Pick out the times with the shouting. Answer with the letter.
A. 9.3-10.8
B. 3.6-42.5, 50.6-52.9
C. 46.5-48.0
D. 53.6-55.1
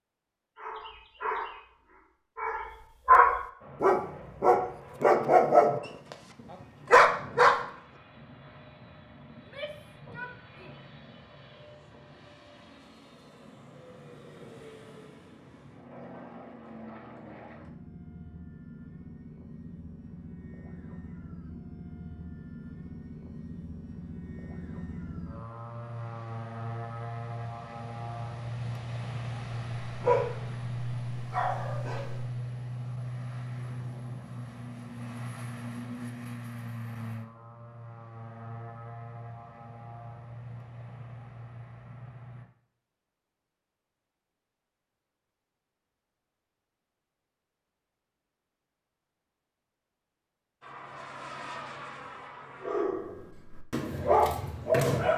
A.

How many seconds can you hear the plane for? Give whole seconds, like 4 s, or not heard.
41 s.